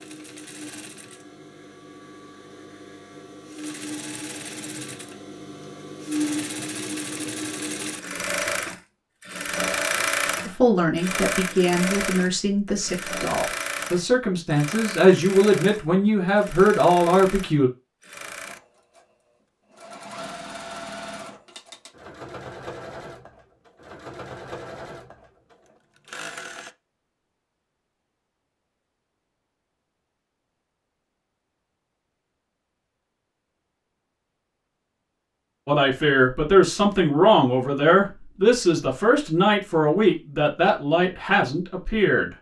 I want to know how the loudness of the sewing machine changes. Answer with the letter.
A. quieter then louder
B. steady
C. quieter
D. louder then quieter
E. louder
D.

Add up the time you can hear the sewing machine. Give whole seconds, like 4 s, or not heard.
27 s.